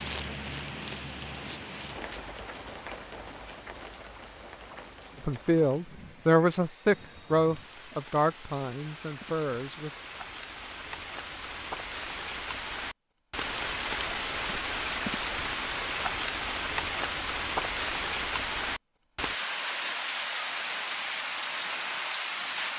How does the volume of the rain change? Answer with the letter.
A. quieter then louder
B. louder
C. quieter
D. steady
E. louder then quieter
A.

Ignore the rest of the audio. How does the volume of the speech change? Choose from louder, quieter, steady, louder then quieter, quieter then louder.
quieter.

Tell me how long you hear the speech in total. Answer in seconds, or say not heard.
5 s.